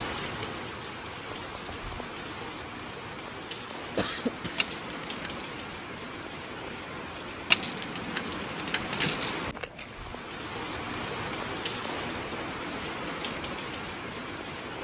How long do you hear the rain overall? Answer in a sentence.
The rain can be heard for 15 seconds in total.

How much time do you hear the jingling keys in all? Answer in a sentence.
The jingling keys can be heard for 3 seconds in total.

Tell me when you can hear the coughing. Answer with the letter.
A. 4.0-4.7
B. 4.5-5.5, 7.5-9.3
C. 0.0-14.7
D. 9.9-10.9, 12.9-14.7
A.